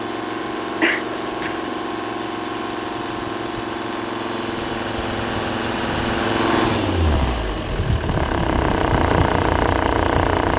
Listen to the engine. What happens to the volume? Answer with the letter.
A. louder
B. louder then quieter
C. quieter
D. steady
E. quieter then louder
A.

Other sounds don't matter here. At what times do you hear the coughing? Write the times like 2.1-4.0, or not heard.
0.8-1.7.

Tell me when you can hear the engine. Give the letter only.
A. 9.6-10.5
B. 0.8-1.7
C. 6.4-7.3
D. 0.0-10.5
D.